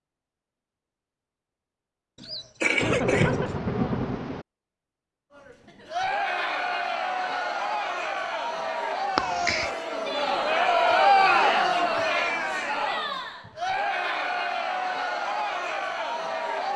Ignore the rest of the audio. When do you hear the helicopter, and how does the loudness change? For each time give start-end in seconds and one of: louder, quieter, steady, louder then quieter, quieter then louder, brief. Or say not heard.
not heard.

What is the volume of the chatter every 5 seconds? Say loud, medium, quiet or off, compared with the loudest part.
off, medium, loud, medium.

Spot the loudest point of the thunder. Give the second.
3 s.